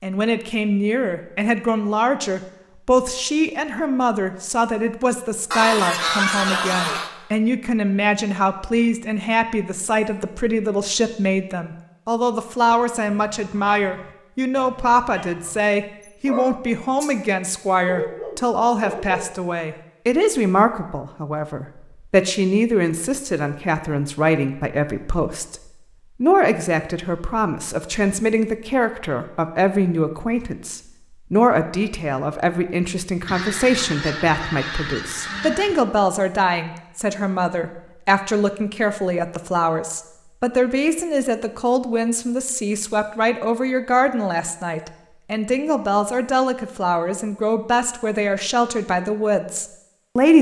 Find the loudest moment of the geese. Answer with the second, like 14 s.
6 s.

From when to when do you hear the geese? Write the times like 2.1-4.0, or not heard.
5.5-7.1, 33.2-35.9.